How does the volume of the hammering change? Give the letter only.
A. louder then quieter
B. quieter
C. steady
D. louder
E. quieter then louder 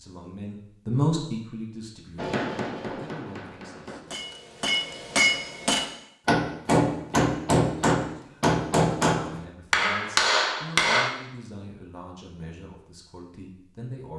D.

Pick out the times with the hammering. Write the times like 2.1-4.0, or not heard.
2.1-11.1.